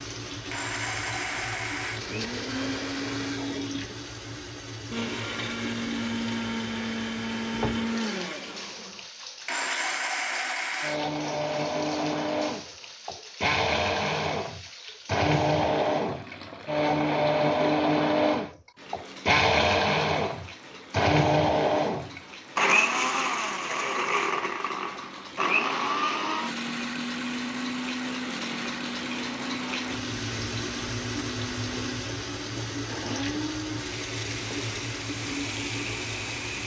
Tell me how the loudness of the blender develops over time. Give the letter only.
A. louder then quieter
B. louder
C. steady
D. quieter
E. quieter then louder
A.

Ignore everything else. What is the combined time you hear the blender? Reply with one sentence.
You can hear the blender for 36 seconds altogether.